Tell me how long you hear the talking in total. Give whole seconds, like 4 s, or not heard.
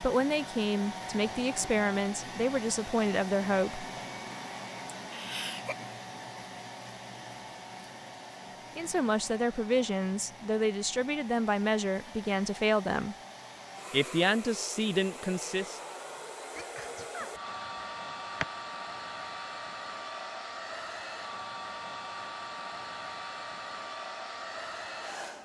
10 s.